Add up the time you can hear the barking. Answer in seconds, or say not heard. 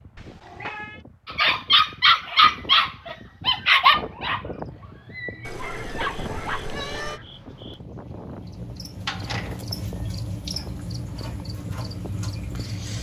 6 s.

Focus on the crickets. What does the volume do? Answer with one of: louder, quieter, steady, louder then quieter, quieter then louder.
louder.